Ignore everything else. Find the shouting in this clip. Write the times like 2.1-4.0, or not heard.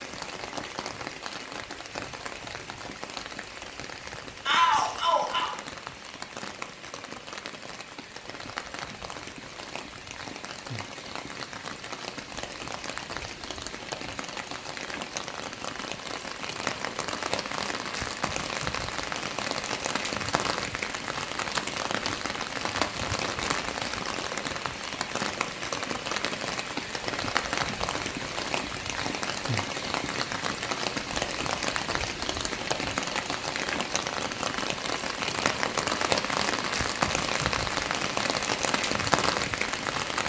4.5-5.5.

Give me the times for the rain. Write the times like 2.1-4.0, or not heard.
0.0-40.2.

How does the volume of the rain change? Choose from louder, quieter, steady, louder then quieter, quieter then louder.
louder.